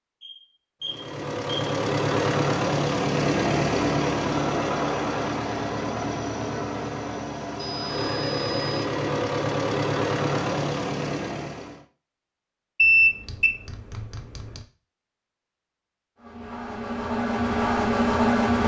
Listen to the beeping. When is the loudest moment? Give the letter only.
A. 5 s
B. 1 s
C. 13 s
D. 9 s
C.